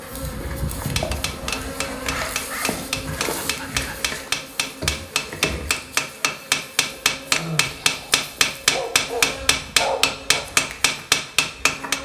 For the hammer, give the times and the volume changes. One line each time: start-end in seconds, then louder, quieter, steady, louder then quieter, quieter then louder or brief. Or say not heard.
0.8-11.9 louder.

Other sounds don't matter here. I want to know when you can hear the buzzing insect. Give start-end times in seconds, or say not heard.
0.0-11.9.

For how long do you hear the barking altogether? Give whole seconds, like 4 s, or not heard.
4 s.